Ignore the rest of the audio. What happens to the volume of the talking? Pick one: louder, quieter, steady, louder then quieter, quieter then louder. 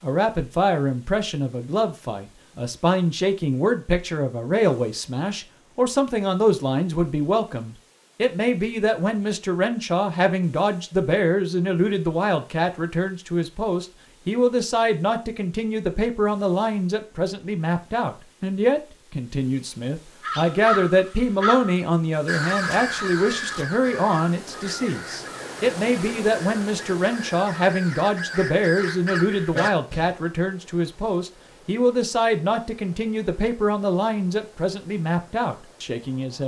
steady.